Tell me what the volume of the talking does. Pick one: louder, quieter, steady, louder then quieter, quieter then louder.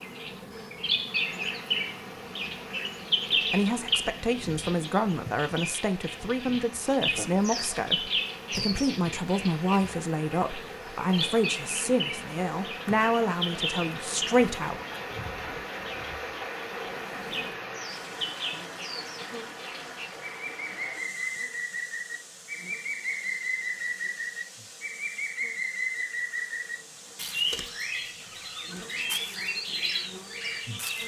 steady.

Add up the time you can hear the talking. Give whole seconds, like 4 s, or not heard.
11 s.